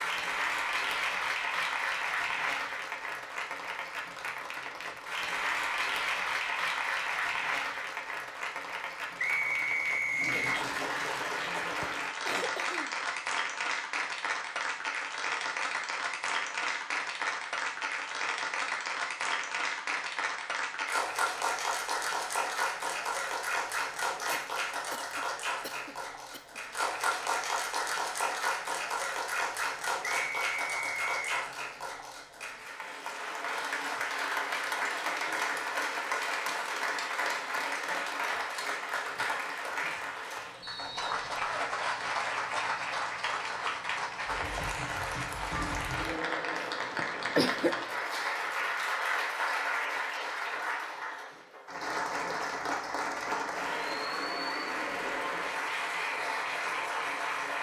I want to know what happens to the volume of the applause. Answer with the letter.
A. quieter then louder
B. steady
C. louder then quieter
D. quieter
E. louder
B.